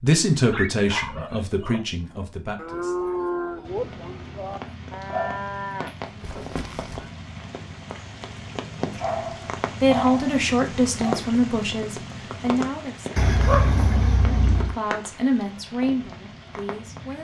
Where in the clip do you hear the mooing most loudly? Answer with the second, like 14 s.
3 s.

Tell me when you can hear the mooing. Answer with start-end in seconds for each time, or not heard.
2.0-7.2.